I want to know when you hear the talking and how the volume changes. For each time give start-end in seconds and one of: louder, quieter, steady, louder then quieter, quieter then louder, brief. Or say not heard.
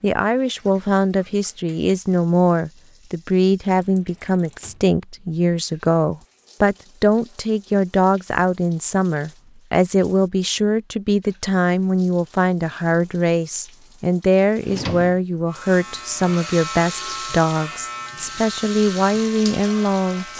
0.0-20.2 steady.